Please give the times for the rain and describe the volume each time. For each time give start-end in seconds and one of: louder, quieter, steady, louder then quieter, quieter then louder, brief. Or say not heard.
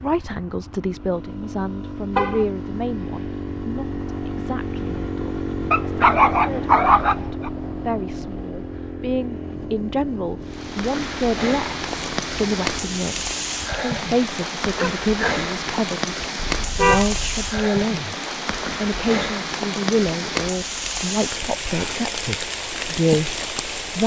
10.4-24.0 steady.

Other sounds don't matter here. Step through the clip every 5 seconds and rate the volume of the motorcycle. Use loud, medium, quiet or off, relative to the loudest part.
loud, loud, medium, off, off.